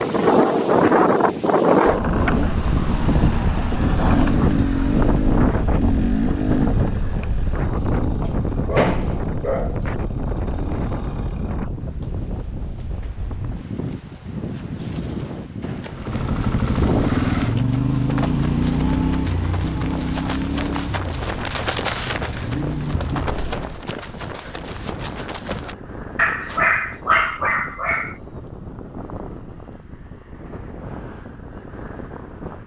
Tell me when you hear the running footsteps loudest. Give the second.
22 s.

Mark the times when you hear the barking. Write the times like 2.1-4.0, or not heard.
8.2-9.8, 26.1-28.1.